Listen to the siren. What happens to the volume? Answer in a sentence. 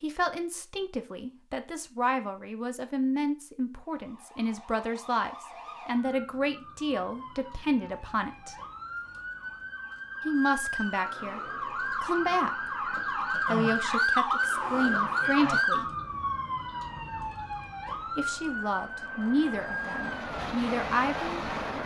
The volume of the siren goes up, then down.